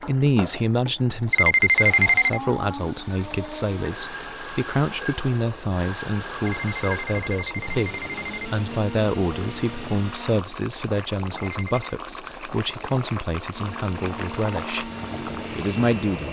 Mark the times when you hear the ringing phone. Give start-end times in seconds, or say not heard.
1.3-2.4, 6.5-8.4, 11.3-11.9.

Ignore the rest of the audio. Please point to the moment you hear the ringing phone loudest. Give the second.
2 s.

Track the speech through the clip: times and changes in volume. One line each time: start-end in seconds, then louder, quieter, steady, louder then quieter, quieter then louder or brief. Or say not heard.
0.0-14.9 steady
15.5-16.2 brief.